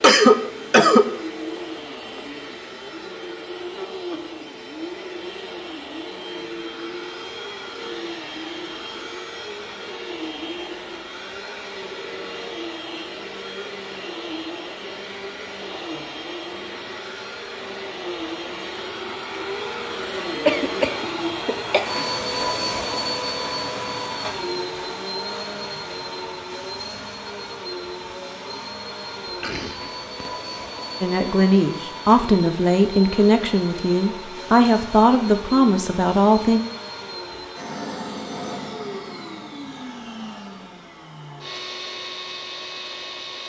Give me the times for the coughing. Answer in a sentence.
The coughing can be heard from 0.0 to 1.1 s, from 20.4 to 21.8 s and from 29.2 to 30.3 s.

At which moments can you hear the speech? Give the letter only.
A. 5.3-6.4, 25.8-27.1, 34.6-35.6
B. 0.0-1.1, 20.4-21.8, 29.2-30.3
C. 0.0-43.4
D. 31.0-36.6
D.